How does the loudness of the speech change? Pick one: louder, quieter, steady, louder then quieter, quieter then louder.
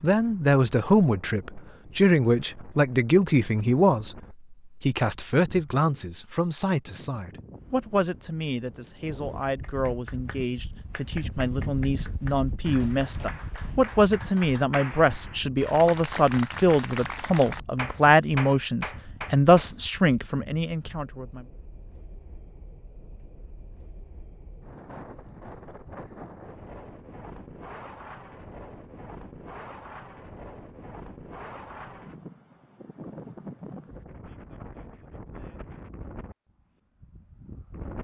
quieter then louder.